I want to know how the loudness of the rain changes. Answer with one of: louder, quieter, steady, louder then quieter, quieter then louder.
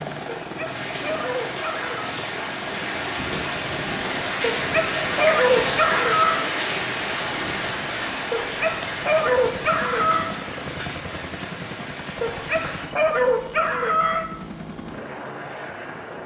louder then quieter.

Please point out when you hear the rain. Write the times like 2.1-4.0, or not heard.
0.0-12.9.